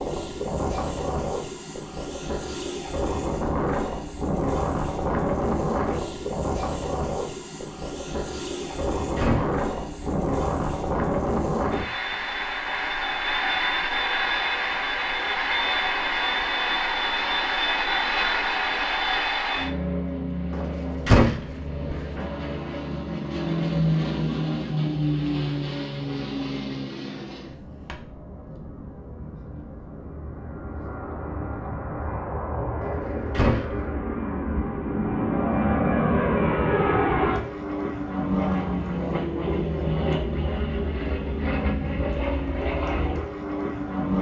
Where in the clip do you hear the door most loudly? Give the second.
21 s.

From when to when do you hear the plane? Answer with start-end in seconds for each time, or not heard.
0.0-44.1.